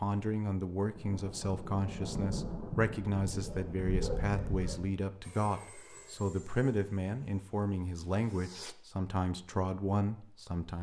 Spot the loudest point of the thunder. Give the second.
2 s.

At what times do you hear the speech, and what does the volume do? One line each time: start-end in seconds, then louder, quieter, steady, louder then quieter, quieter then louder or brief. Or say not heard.
0.0-10.7 steady.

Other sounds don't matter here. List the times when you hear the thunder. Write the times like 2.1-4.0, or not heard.
0.9-4.2.